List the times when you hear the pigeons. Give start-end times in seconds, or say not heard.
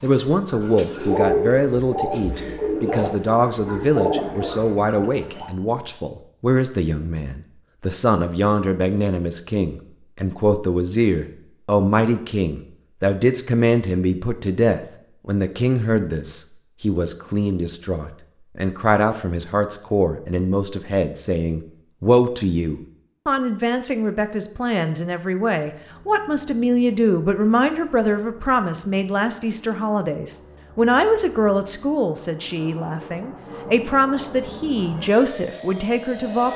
0.0-5.5.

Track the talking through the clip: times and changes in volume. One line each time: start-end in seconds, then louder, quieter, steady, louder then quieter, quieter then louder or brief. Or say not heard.
0.0-36.5 steady.